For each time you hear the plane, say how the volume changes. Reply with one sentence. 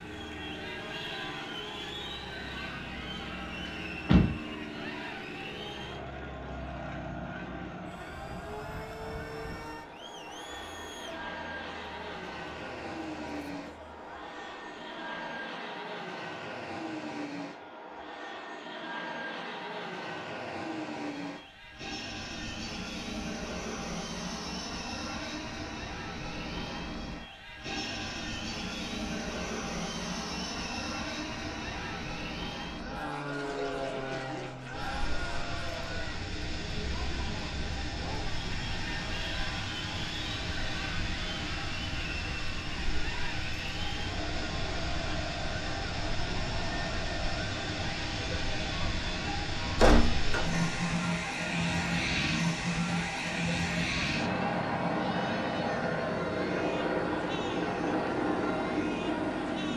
You can hear the plane from 0.0 to 59.7 s, getting louder.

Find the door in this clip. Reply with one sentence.
The door can be heard from 3.6 to 4.8 s and from 49.8 to 50.8 s.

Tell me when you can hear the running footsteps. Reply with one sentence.
You can't hear the running footsteps here.